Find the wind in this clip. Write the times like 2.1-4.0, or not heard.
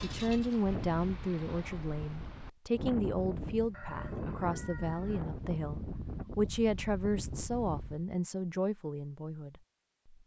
0.0-8.1.